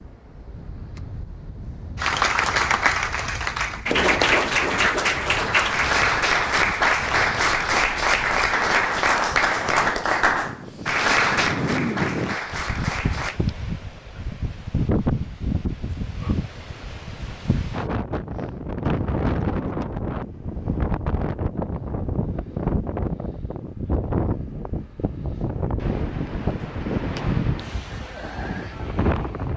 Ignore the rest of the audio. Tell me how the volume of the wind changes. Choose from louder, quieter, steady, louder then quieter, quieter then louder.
louder.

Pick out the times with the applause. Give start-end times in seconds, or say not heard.
1.9-13.4.